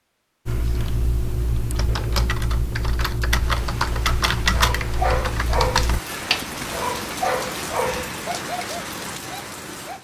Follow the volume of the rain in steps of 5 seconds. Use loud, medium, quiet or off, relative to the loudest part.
medium, loud.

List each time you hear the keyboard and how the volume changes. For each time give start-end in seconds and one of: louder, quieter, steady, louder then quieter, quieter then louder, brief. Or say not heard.
0.5-6.0 louder then quieter.